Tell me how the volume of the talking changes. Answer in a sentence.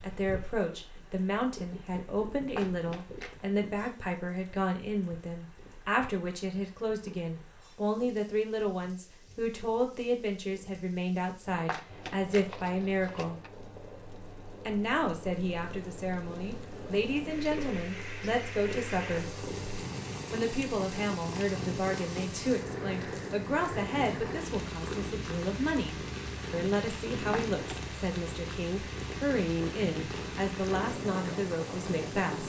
The loudness of the talking stays about the same.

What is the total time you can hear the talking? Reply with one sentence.
You can hear the talking for 30 seconds altogether.